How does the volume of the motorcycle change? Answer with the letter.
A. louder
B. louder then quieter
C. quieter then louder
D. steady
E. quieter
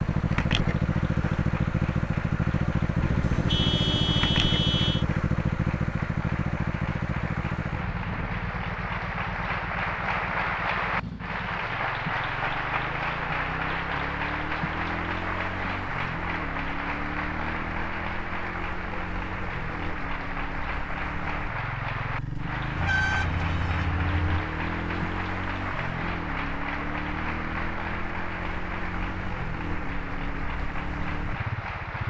E.